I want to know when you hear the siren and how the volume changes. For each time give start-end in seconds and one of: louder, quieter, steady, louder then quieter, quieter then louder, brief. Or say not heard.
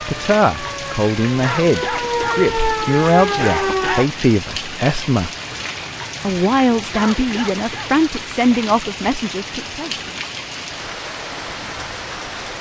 0.0-4.0 louder.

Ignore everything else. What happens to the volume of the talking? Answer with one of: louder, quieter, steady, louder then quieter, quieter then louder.
steady.